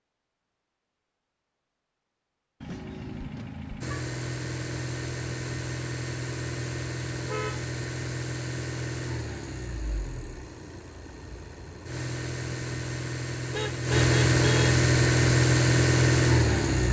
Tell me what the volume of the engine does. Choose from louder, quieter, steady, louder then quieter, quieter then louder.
quieter then louder.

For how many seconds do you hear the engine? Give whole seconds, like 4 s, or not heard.
13 s.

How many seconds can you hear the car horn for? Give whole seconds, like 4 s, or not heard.
3 s.